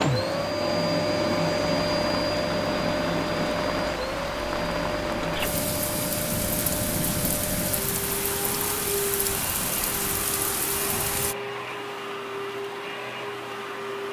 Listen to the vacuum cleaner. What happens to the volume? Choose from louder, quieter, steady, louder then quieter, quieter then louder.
quieter.